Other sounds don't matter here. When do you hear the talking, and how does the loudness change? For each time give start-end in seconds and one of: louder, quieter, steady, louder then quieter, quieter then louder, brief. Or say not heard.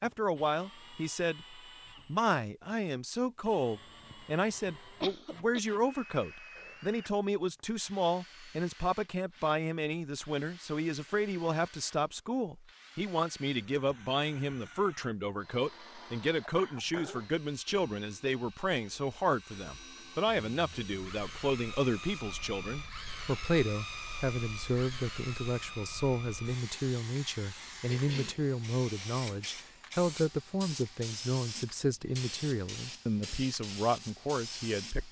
0.0-35.0 steady.